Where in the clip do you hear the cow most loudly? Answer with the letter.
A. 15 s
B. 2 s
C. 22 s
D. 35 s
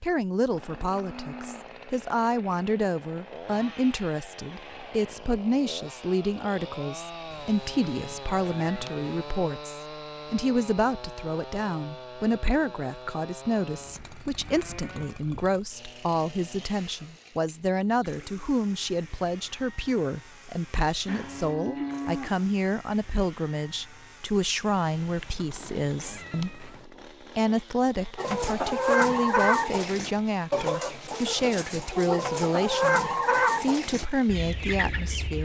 C.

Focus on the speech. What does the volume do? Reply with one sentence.
The loudness of the speech stays about the same.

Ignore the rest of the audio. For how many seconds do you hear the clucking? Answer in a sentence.
The clucking can be heard for 7 seconds in total.